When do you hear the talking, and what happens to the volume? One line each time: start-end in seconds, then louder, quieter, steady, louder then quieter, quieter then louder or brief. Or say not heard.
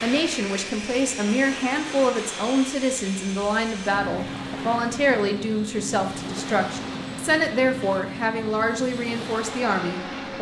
0.0-10.3 steady.